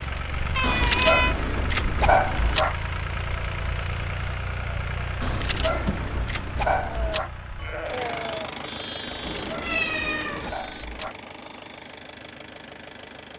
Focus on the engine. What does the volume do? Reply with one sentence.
The volume of the engine goes down.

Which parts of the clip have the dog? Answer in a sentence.
You can hear the dog from 0.6 to 2.8 s, from 5.2 to 7.3 s and from 9.2 to 11.2 s.